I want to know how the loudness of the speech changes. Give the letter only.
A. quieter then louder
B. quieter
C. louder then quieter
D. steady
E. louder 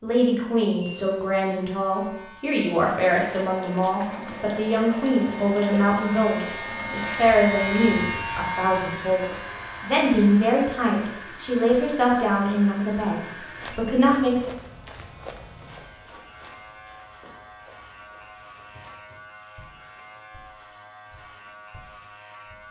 D.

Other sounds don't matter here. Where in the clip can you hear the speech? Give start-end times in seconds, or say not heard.
0.0-14.5.